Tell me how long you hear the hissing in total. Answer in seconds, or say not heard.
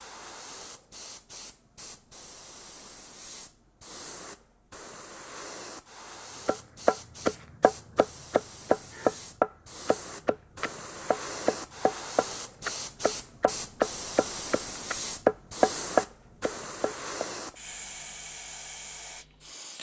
20 s.